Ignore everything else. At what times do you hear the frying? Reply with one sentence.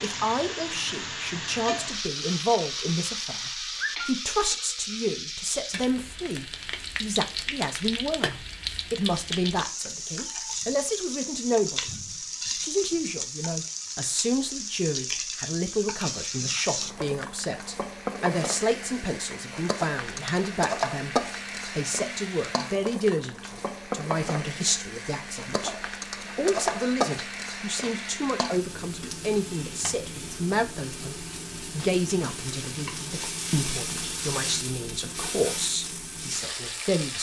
You can hear the frying from 0.0 to 37.1 s.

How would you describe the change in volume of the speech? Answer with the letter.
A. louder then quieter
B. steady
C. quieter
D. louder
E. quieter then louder
B.